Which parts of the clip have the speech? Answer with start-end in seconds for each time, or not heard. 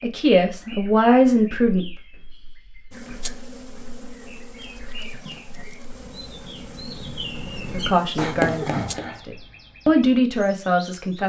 0.0-1.9, 7.7-11.2.